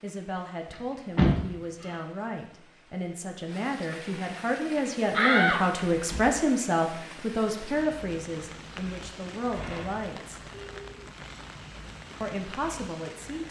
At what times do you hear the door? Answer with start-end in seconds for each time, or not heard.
0.7-1.9, 5.1-6.3, 9.3-10.1.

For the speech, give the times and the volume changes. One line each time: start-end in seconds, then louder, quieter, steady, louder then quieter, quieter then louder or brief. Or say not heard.
0.0-10.4 louder then quieter
12.2-13.4 brief.